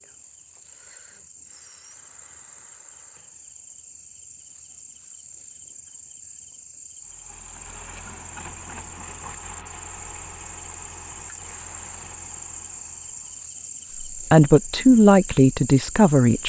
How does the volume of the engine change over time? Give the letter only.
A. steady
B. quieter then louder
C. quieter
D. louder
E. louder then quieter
C.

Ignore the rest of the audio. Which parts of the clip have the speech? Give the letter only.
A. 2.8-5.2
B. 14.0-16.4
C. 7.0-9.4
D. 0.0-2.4
B.